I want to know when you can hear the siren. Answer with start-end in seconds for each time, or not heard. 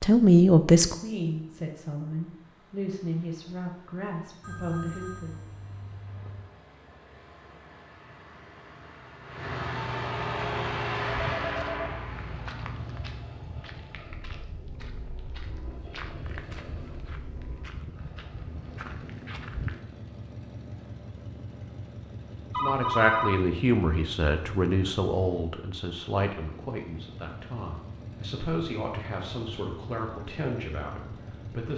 not heard.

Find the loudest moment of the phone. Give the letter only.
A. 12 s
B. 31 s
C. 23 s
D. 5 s
C.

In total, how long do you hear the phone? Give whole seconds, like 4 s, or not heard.
4 s.